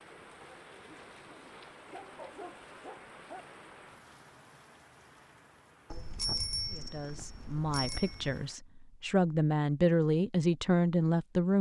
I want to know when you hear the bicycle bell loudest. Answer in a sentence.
The loudest moment of the bicycle bell is at 6 seconds.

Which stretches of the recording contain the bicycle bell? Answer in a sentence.
You can hear the bicycle bell from 5.9 to 8.4 s.